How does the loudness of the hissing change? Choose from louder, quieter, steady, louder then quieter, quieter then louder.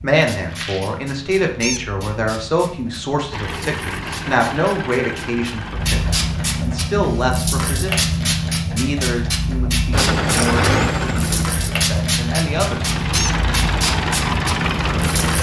louder.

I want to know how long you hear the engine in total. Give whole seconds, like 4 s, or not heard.
9 s.